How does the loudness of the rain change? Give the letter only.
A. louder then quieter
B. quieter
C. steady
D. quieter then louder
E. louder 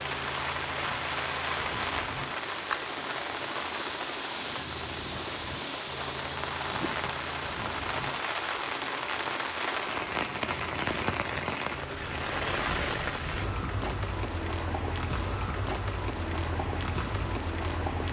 C.